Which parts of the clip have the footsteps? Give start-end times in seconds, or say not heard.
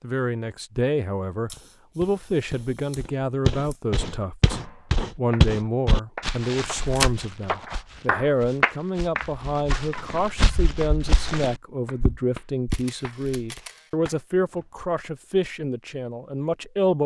1.5-12.8.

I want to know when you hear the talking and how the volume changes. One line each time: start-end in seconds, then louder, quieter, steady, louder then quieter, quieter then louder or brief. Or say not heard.
0.0-17.0 steady.